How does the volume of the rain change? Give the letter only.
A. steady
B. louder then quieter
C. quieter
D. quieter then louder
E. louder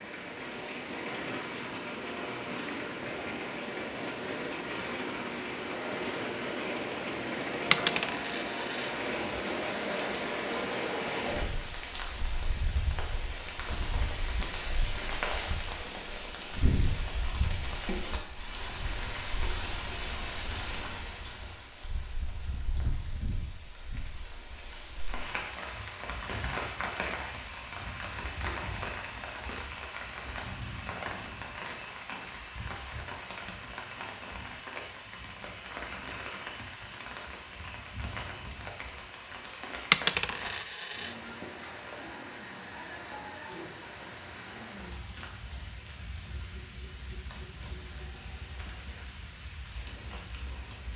C.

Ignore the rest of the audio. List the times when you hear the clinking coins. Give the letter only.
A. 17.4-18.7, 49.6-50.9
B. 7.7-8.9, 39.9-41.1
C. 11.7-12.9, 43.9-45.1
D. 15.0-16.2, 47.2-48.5
B.